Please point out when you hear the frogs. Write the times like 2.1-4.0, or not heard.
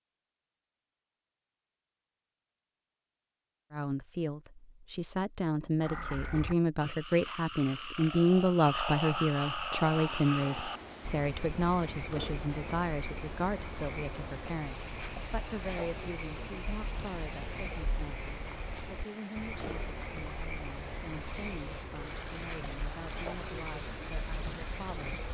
5.8-25.2.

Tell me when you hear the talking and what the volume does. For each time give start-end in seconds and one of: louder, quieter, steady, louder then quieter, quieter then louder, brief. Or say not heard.
3.7-25.1 quieter.